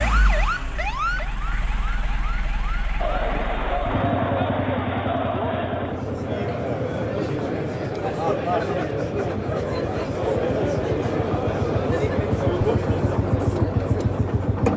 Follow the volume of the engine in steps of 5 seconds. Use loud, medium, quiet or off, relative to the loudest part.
medium, medium, loud.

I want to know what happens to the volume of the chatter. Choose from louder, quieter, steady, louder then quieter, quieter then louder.
steady.